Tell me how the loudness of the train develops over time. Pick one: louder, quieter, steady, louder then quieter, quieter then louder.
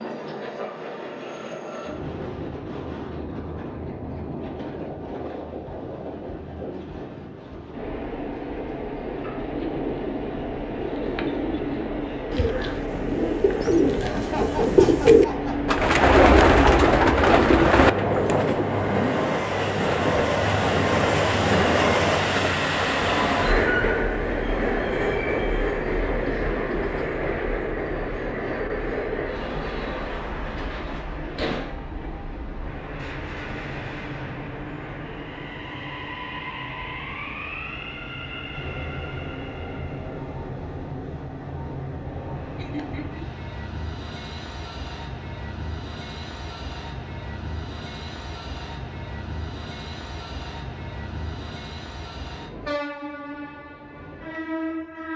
louder then quieter.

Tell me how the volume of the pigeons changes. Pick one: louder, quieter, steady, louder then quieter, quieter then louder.
louder.